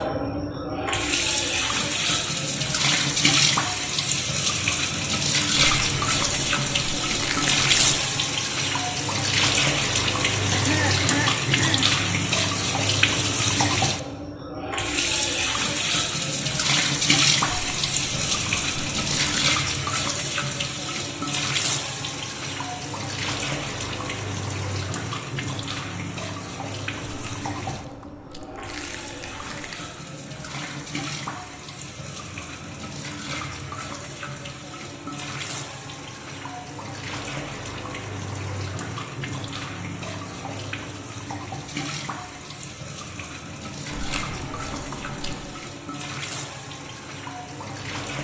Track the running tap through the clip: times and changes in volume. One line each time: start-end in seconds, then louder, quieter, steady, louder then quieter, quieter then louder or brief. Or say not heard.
0.0-48.2 quieter.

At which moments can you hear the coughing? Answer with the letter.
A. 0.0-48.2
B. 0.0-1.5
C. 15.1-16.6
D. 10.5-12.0
D.